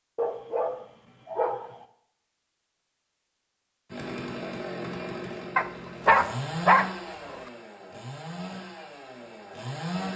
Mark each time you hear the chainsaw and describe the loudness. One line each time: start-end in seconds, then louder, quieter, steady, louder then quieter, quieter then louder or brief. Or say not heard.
3.9-10.1 quieter.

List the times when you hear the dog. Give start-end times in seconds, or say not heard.
0.1-1.9, 5.5-7.4.